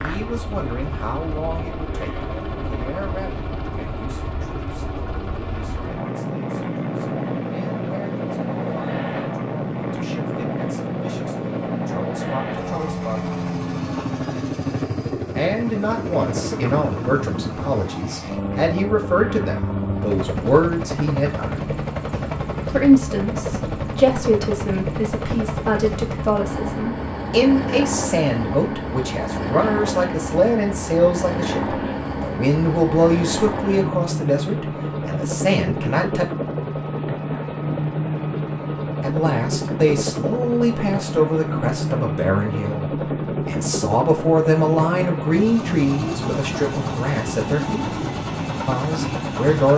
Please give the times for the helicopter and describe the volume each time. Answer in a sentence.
You can hear the helicopter from 0.0 to 49.7 s, at a steady volume.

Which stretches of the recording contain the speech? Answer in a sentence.
You can hear the speech from 0.0 to 13.3 s, from 15.3 to 21.7 s, from 22.7 to 36.2 s, from 39.0 to 47.9 s and from 48.6 to 49.7 s.